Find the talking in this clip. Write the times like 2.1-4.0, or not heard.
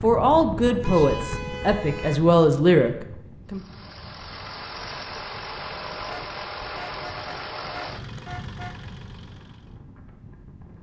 0.0-3.6.